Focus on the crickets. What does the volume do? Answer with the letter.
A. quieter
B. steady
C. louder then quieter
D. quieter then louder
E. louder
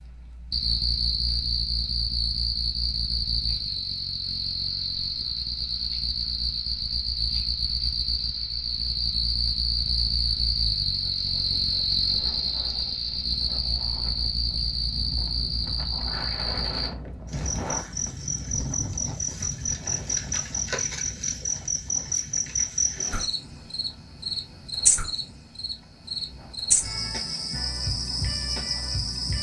B.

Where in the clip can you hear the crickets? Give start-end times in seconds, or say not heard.
0.0-29.3.